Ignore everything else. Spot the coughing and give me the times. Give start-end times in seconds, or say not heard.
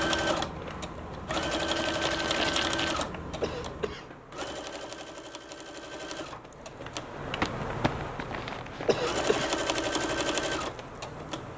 3.4-4.0, 8.8-9.6.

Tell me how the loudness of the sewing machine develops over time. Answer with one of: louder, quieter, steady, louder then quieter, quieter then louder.
quieter then louder.